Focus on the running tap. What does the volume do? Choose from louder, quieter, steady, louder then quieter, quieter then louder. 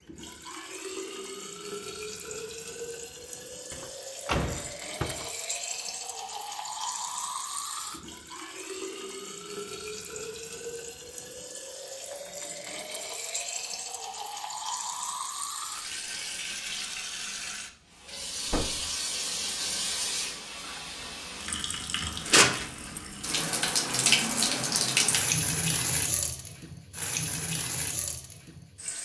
louder.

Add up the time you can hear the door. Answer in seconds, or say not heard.
2 s.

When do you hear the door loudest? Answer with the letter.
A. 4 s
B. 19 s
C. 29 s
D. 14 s
A.